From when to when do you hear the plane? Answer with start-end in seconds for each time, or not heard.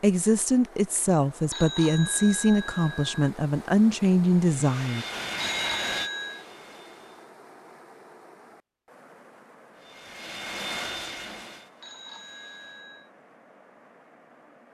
4.4-7.3, 9.8-12.8.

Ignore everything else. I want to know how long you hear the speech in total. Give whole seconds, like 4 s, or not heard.
5 s.